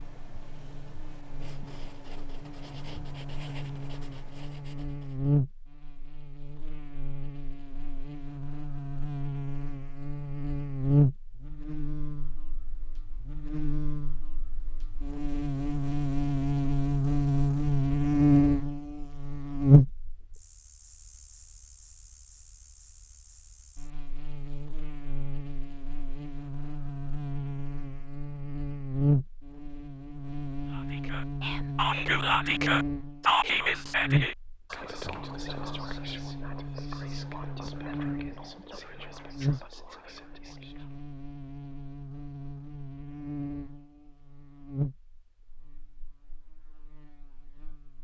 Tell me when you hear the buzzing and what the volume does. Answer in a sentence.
You can hear the buzzing from 0.0 to 48.0 s, getting louder then quieter.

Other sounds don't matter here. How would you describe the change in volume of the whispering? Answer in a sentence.
The loudness of the whispering goes down.